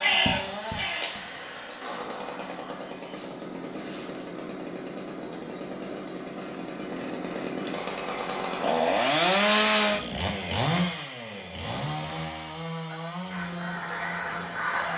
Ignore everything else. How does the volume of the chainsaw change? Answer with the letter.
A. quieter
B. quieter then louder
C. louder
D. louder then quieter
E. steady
D.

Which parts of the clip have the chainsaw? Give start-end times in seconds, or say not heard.
0.0-14.9.